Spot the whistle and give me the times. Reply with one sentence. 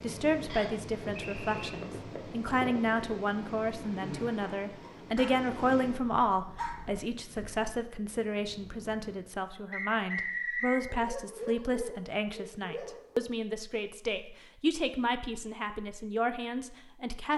The whistle can be heard from 0.5 to 1.8 s and from 9.7 to 10.8 s.